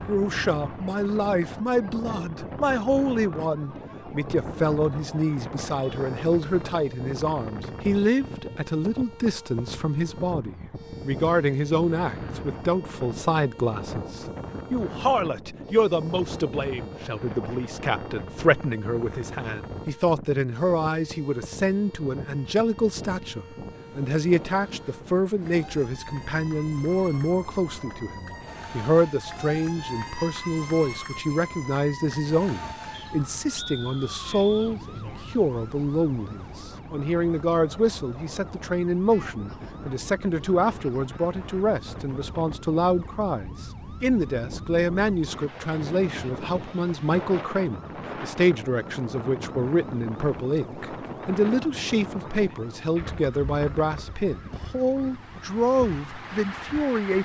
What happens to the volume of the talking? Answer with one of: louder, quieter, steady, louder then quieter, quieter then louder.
steady.